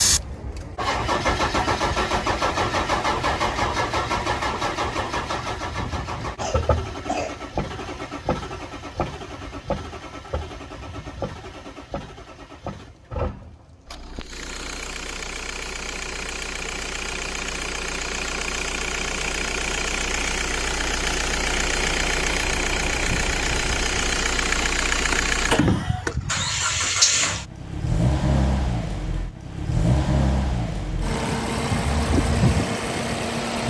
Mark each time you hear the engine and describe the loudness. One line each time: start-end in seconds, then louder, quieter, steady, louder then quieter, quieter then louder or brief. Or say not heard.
0.0-33.6 quieter then louder.